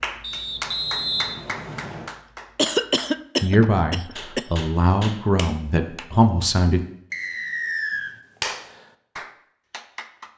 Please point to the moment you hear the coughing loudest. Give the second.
3 s.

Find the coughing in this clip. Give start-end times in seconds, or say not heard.
2.5-4.5.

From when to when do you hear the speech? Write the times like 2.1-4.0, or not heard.
3.4-6.8.